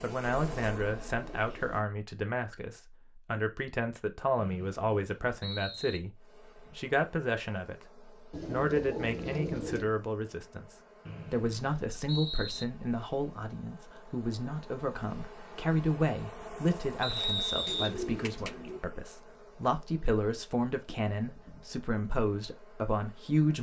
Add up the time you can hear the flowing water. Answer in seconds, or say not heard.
not heard.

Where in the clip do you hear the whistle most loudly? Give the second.
17 s.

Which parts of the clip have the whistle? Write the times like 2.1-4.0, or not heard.
4.3-6.0, 11.1-12.7, 17.0-17.9.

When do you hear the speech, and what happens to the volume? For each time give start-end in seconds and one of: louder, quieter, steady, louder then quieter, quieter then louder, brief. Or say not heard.
0.0-23.5 steady.